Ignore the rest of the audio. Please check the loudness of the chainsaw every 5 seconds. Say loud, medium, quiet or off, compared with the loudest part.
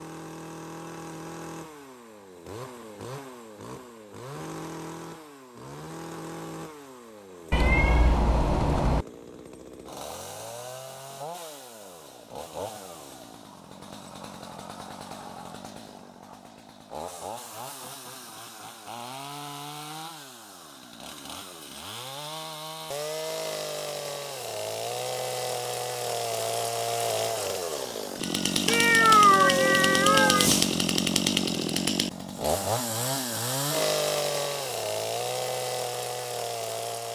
quiet, quiet, quiet, quiet, medium, loud, loud, medium.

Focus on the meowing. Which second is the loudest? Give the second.
29 s.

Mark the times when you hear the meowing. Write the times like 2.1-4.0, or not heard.
7.5-9.1, 28.6-30.5.